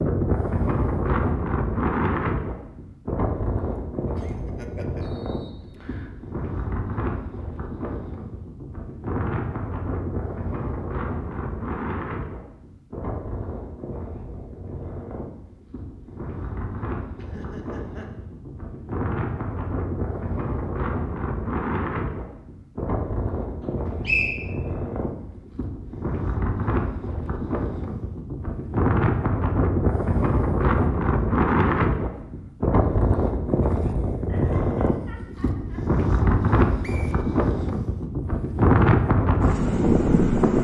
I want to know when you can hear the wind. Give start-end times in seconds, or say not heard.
0.0-40.5.